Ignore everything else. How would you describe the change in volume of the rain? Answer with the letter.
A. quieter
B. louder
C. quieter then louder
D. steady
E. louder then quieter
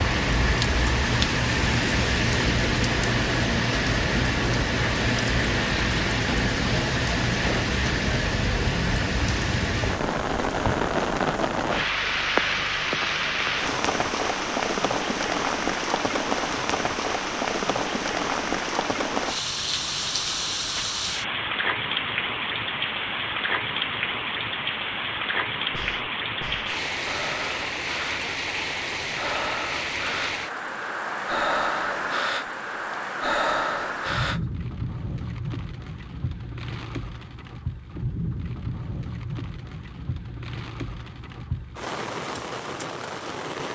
A.